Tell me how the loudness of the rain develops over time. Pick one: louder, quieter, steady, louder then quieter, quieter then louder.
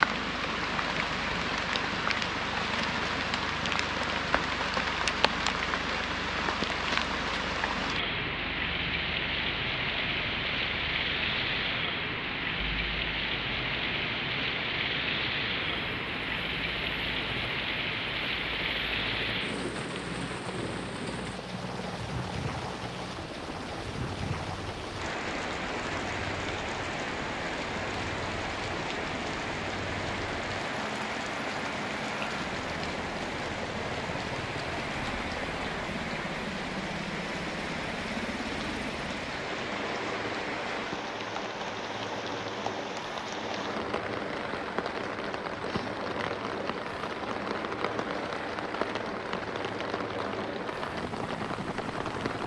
quieter.